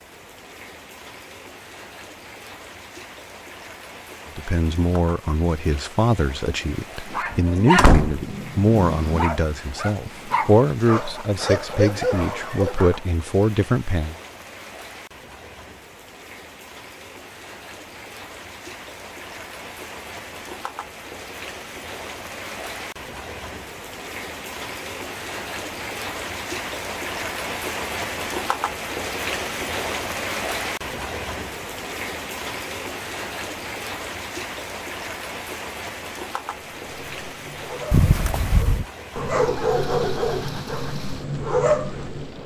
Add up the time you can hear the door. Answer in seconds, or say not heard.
2 s.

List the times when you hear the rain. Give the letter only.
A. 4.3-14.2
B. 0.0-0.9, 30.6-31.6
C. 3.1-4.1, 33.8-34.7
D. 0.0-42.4
D.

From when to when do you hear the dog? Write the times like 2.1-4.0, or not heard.
7.0-13.0, 36.5-42.4.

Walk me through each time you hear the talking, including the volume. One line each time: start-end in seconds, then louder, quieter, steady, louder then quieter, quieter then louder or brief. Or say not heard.
4.3-14.2 steady.